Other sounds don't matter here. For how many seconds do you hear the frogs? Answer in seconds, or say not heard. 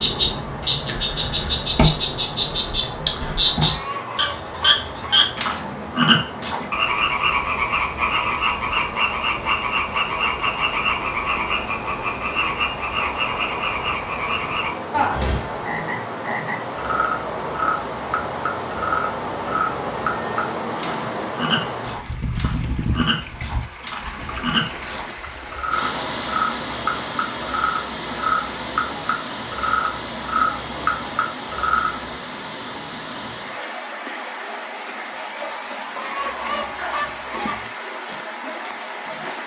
32 s.